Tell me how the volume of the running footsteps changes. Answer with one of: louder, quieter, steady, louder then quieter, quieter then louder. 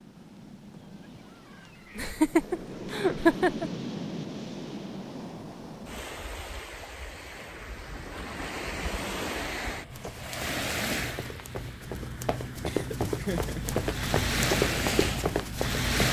louder.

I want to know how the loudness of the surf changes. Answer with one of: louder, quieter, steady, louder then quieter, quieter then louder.
louder.